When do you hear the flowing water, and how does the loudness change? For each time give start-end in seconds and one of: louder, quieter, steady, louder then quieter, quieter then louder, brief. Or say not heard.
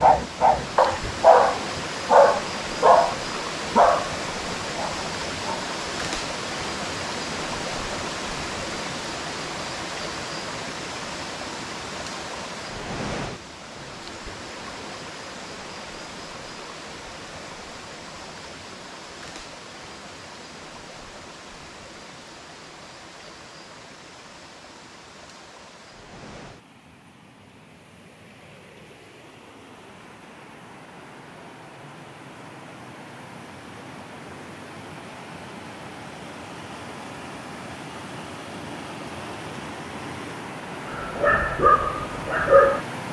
0.0-43.0 quieter then louder.